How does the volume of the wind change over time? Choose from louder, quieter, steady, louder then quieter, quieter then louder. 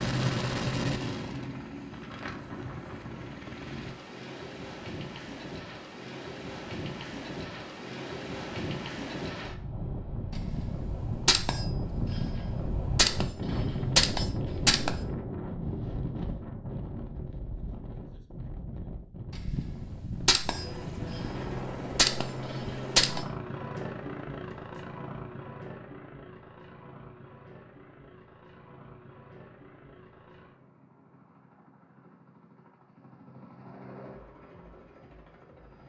louder then quieter.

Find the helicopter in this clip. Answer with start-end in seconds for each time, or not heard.
0.0-4.0, 20.5-35.8.